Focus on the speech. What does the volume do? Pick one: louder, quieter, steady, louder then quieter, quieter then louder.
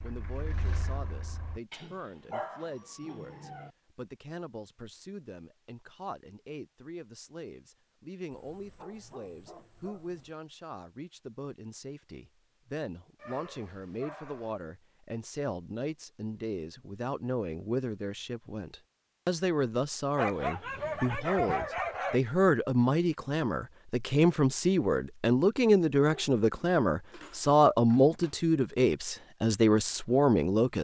louder.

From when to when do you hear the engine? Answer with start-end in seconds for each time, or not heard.
0.0-1.6.